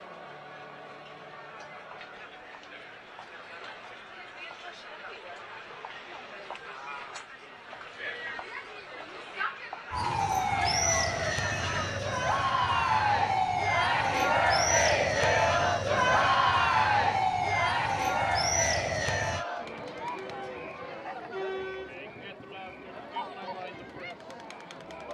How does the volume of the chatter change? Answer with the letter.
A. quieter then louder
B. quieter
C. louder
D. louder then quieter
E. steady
D.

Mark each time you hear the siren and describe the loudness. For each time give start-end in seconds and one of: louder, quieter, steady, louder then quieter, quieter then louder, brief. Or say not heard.
9.9-19.4 steady.